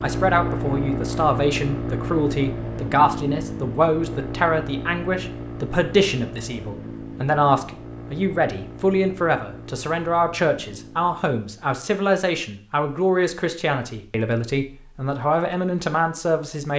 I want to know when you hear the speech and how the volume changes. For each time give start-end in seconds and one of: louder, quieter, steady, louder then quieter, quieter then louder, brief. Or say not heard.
0.0-16.7 steady.